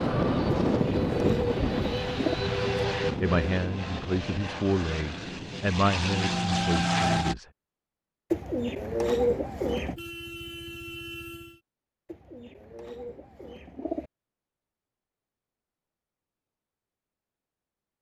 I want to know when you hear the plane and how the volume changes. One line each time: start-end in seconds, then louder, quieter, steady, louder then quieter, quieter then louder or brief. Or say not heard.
0.0-7.3 quieter then louder.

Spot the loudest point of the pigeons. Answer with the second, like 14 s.
9 s.